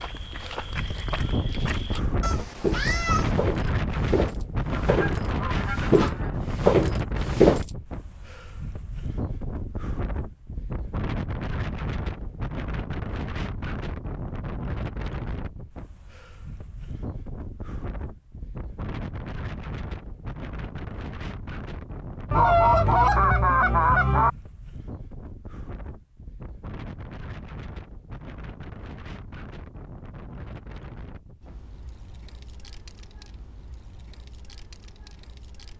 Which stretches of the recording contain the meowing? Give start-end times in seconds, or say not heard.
2.2-3.4.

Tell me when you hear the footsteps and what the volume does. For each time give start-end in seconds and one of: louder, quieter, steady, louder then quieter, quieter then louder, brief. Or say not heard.
0.0-7.6 louder.